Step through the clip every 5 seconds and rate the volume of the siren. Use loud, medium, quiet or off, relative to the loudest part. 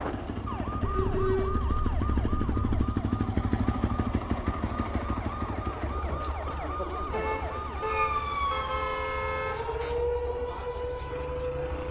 medium, loud, loud.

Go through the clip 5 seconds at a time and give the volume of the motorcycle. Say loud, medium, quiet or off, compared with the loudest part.
loud, medium, quiet.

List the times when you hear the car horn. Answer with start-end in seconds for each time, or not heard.
0.8-2.7, 7.1-9.7.